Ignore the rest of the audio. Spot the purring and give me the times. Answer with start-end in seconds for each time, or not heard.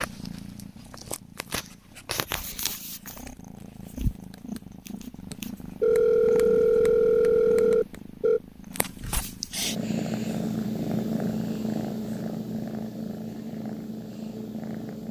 0.0-15.0.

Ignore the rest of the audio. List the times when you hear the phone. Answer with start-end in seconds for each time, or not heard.
5.8-8.4.